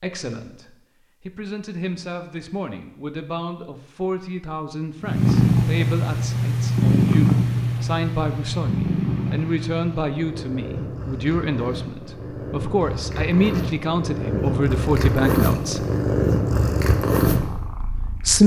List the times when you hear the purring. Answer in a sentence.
You can hear the purring from 5.0 to 18.4 s.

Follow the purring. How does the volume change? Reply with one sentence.
The volume of the purring goes down, then up.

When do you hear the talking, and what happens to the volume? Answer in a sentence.
The talking can be heard from 0.0 to 15.8 s, getting louder; and briefly from 17.8 to 18.4 s.